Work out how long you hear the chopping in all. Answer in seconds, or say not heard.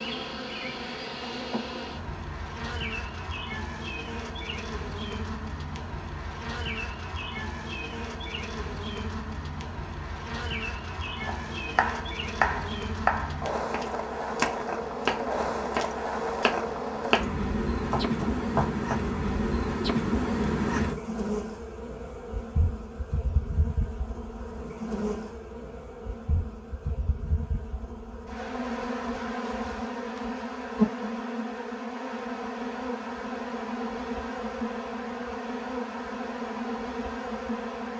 7 s.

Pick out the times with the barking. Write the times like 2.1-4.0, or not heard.
not heard.